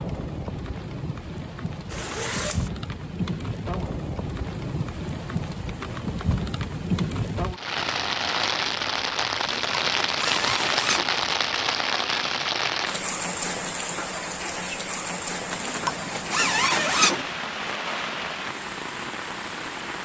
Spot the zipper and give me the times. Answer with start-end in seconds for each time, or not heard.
1.9-2.7, 9.4-11.1, 15.5-17.2.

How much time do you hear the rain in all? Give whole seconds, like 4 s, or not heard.
20 s.